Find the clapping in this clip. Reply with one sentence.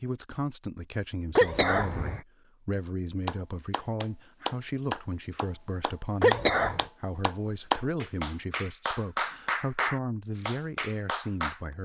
You can hear the clapping from 3.2 to 11.6 s.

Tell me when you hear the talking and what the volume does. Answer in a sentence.
You can hear the talking from 0.0 to 11.7 s, at a steady volume.